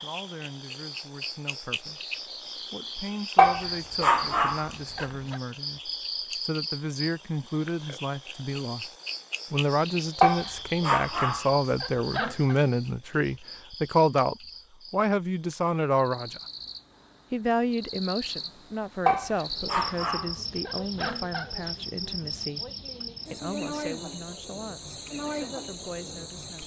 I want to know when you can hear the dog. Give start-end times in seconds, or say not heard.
3.4-5.3, 10.2-12.6, 19.1-21.5.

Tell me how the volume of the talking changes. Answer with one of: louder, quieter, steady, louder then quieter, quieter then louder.
louder then quieter.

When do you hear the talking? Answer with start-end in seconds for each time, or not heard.
0.0-8.9, 9.5-16.4, 17.3-22.7, 23.3-26.6.